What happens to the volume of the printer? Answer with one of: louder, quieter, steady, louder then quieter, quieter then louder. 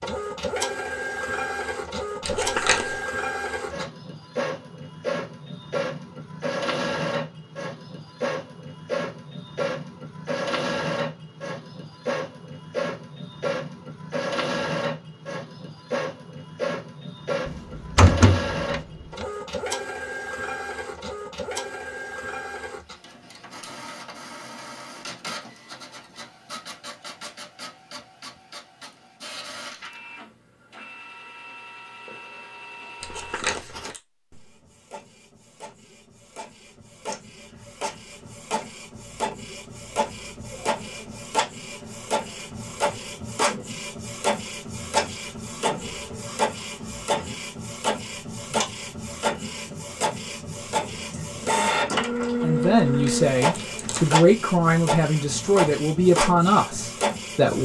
quieter then louder.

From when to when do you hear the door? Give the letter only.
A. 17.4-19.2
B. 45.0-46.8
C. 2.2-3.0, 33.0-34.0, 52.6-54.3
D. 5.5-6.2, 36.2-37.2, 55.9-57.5
A.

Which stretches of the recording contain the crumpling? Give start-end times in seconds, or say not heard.
2.2-3.0, 33.0-34.0, 52.6-54.3.